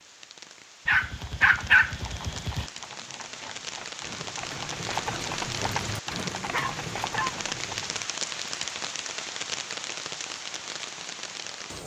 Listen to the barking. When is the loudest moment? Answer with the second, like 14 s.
2 s.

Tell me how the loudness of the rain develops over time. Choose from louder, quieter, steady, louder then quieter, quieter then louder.
louder.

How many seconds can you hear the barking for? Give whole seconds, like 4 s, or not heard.
3 s.